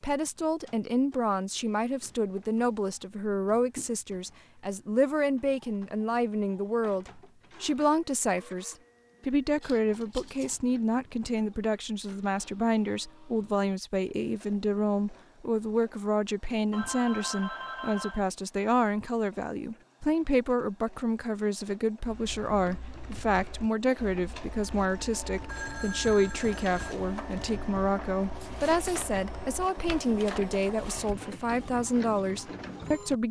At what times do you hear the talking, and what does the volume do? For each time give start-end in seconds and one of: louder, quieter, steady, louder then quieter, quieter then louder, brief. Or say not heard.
0.0-33.2 steady.